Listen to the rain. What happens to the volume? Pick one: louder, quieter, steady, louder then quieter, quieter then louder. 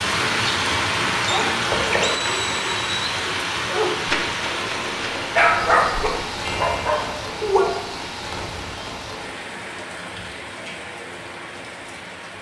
quieter.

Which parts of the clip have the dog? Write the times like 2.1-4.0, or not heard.
1.2-7.7.